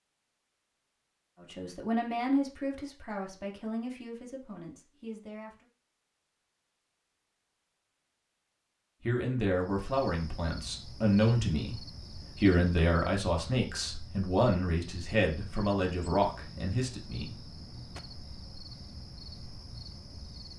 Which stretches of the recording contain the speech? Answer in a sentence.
You can hear the speech from 1.4 to 5.7 s and from 9.0 to 17.4 s.